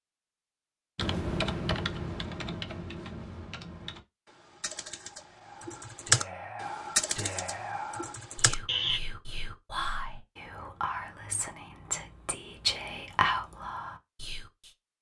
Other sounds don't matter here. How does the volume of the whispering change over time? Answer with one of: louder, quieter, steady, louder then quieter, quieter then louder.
louder.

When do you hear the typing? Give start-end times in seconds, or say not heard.
0.9-9.0.